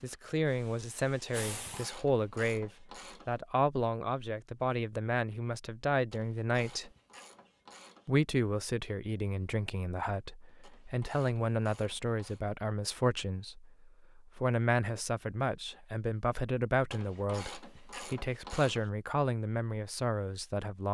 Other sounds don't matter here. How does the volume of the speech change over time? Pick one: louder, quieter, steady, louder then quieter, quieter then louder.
steady.